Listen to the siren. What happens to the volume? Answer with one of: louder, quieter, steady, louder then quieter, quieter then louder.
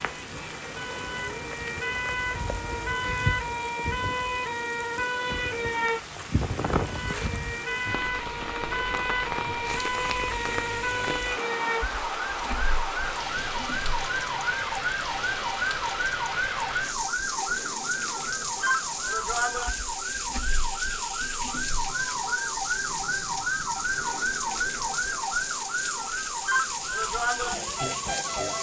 steady.